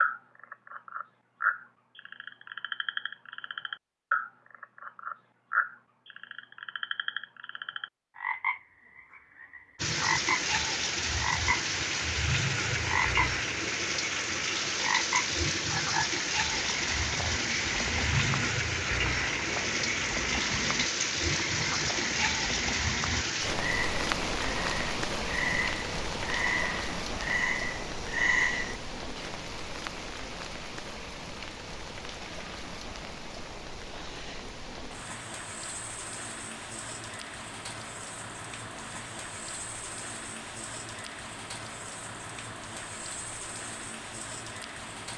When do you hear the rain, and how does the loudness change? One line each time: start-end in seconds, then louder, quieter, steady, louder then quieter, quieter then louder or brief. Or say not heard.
9.8-45.1 quieter.